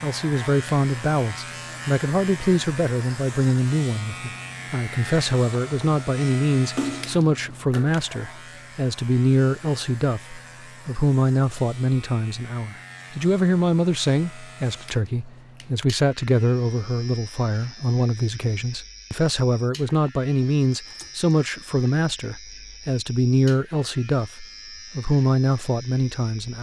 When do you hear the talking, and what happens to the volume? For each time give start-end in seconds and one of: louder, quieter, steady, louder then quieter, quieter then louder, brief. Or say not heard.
0.0-26.5 steady.